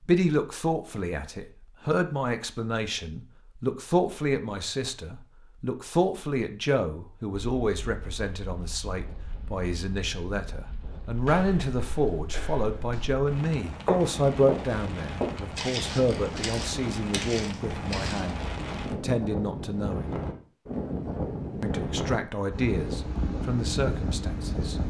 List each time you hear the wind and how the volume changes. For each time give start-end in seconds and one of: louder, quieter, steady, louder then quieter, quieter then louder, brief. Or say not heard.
7.3-24.8 louder.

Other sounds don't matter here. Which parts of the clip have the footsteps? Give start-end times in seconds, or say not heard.
11.2-13.2, 13.8-18.3.